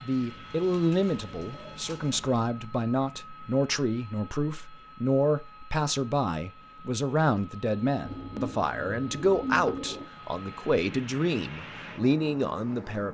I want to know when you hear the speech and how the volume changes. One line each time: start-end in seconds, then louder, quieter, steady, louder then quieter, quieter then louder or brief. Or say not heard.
0.0-13.0 steady.